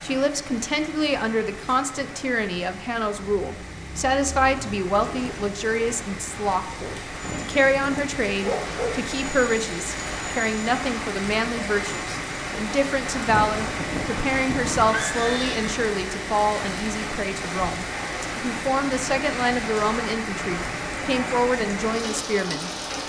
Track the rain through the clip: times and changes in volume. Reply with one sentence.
You can hear the rain from 0.0 to 23.0 s, getting louder.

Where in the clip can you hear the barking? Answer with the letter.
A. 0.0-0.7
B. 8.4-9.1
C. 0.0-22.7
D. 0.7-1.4
B.